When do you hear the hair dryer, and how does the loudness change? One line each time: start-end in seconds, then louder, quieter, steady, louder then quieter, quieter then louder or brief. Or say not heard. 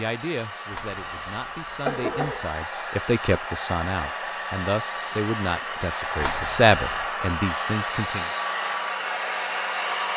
0.0-10.1 louder.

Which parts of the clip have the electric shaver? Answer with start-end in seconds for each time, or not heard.
not heard.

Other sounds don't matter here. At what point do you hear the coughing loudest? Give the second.
2 s.